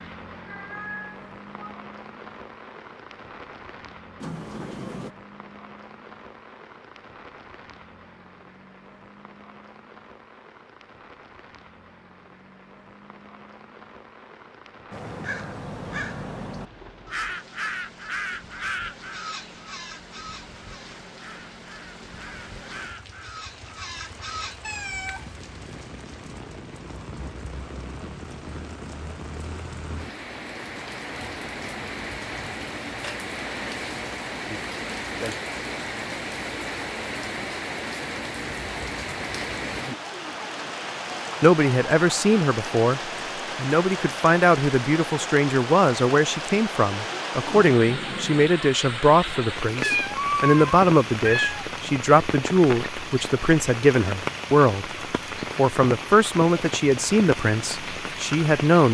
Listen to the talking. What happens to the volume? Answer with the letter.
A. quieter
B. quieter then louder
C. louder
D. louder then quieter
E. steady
E.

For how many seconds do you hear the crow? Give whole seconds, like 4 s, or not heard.
10 s.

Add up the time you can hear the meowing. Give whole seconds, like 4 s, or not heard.
4 s.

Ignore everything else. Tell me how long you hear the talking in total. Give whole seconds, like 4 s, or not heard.
17 s.